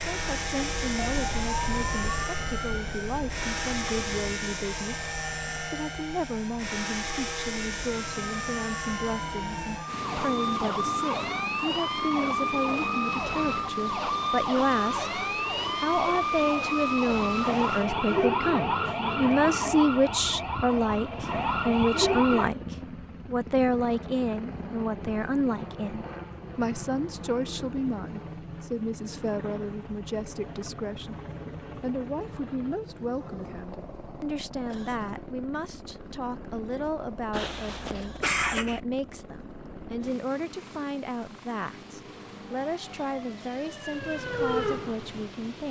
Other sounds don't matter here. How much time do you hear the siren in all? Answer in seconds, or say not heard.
26 s.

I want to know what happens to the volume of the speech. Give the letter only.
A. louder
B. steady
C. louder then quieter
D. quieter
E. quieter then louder
C.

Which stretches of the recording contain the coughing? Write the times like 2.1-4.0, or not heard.
37.3-38.8.